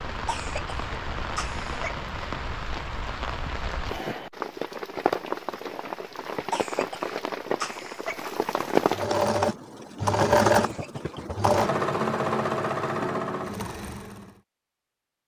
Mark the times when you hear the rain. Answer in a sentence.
The rain can be heard from 0.0 to 9.1 s.